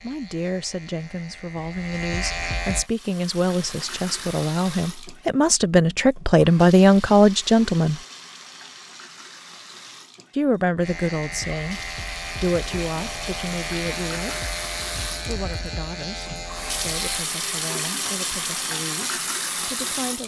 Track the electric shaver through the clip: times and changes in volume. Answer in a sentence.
You can hear the electric shaver briefly from 0.0 to 2.9 s; and from 10.8 to 17.2 s, at a steady volume.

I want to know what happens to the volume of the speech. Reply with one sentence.
The loudness of the speech goes up, then down.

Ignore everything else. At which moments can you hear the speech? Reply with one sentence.
The speech can be heard from 0.0 to 8.0 s, from 10.3 to 14.4 s and from 15.1 to 20.2 s.